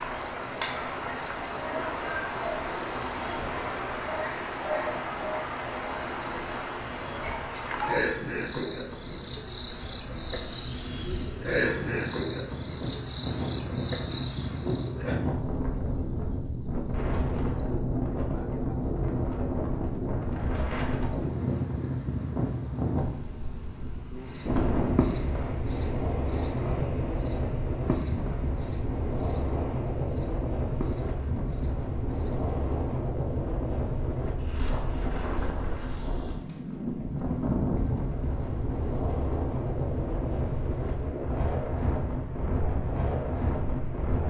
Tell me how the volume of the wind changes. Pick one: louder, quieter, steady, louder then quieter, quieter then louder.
louder.